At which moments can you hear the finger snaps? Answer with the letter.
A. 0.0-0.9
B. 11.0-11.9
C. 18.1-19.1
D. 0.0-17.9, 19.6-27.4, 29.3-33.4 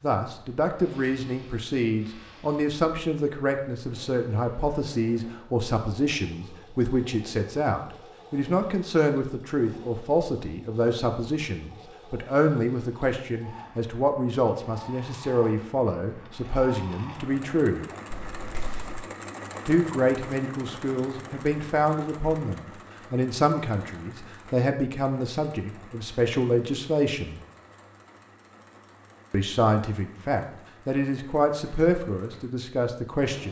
C.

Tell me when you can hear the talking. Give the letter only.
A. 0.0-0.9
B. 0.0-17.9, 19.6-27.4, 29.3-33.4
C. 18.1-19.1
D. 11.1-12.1
B.